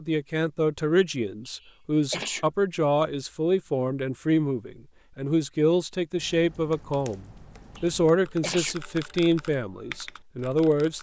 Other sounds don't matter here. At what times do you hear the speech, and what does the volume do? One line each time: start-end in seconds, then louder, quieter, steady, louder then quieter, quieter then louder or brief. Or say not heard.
0.0-10.9 steady.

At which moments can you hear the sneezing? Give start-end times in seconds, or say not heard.
1.4-2.5, 7.8-8.8.